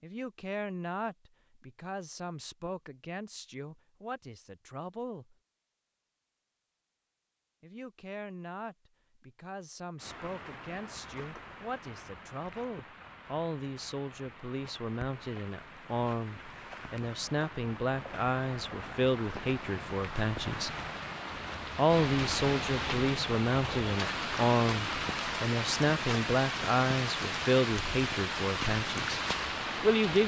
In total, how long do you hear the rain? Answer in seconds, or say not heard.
20 s.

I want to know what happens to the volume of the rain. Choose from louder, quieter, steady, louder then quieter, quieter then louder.
louder.